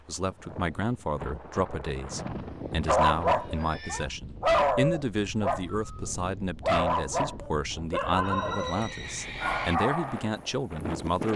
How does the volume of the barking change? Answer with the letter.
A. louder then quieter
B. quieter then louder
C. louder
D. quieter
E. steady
D.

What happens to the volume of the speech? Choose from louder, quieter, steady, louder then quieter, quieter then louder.
steady.